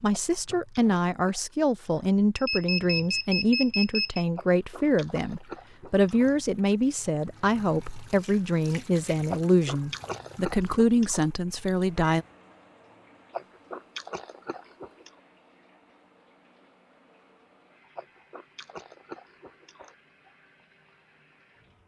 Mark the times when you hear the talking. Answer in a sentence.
The talking can be heard from 0.0 to 12.2 s.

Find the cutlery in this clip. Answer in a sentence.
The cutlery can't be heard in this clip.